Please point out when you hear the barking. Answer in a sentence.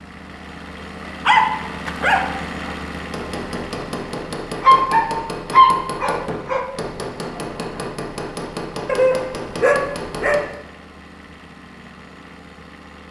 You can hear the barking from 1.2 to 2.7 s, from 4.6 to 6.6 s and from 8.8 to 10.4 s.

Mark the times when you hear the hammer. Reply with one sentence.
You can hear the hammer from 2.9 to 10.6 s.